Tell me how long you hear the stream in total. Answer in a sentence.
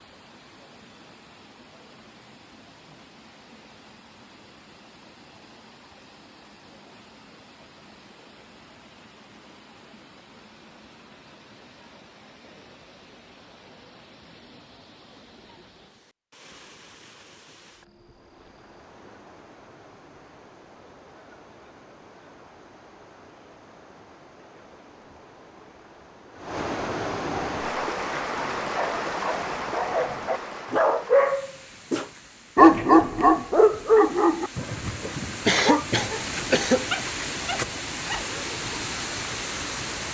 The stream can be heard for 40 seconds in total.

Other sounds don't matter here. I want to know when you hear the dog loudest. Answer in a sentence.
The loudest moment of the dog is at 33 seconds.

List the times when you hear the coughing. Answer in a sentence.
The coughing can be heard from 35.5 to 36.9 s.